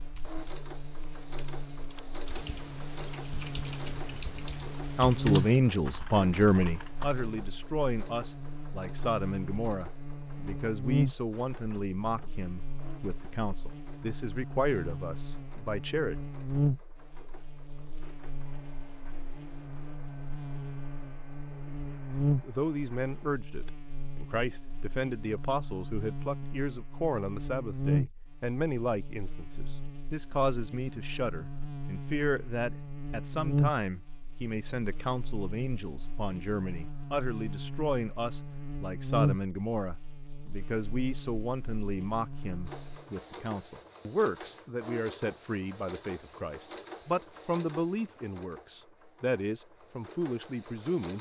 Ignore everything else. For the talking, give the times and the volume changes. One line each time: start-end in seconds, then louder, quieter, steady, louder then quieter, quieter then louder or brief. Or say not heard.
5.0-16.1 quieter
22.4-51.1 steady.